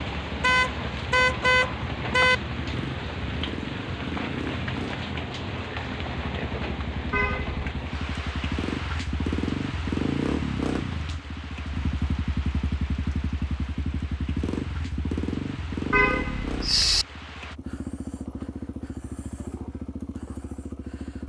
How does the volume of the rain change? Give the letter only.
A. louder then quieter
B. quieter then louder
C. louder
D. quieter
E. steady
D.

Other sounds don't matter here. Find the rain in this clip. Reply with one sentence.
You can hear the rain from 0.0 to 17.6 s.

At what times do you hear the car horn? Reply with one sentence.
You can hear the car horn from 0.4 to 2.4 s, from 7.1 to 7.6 s and from 15.9 to 17.1 s.